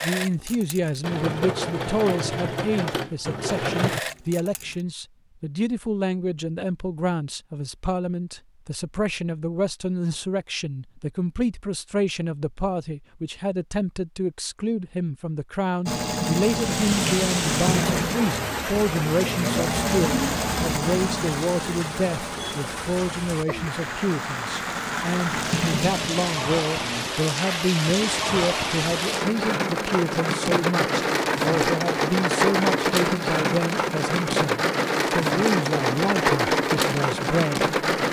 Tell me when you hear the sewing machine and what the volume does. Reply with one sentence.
The sewing machine can be heard from 0.0 to 4.8 s, getting louder; and from 15.8 to 27.1 s, getting quieter then louder.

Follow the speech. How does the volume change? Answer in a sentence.
The volume of the speech stays about the same.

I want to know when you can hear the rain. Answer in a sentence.
You can hear the rain from 16.5 to 38.0 s.